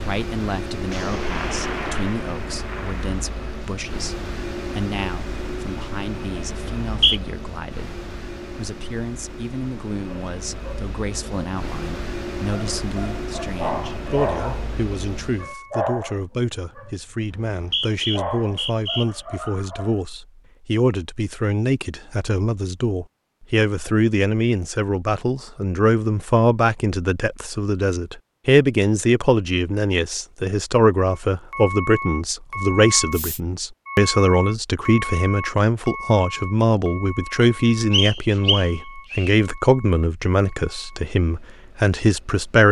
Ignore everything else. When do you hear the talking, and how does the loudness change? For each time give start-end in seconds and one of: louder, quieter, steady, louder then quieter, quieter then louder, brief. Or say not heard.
0.0-42.6 louder.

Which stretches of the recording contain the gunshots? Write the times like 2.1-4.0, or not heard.
0.9-3.6.